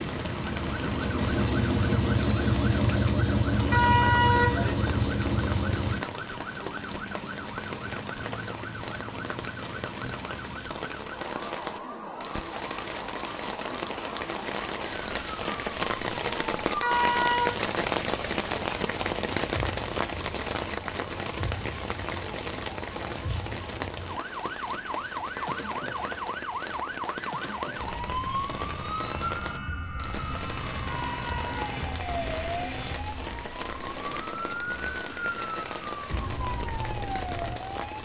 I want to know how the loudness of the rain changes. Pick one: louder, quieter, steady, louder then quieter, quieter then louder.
louder then quieter.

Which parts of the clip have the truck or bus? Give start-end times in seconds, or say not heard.
0.0-6.0.